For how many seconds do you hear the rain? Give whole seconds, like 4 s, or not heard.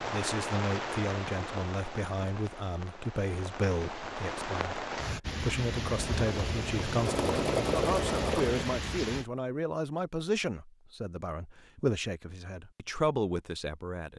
9 s.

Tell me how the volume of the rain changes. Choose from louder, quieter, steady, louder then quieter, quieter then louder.
quieter then louder.